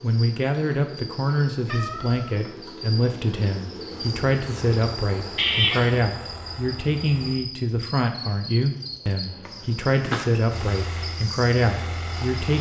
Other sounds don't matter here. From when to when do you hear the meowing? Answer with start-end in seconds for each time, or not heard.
1.6-2.4, 5.3-5.8, 9.4-10.4.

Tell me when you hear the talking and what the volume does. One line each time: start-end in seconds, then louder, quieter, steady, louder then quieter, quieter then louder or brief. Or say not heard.
0.0-12.5 steady.